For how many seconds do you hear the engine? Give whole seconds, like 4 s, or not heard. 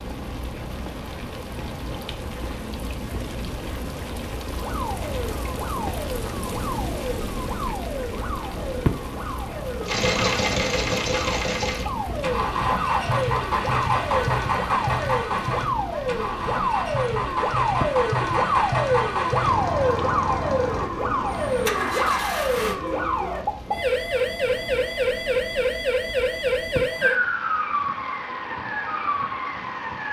13 s.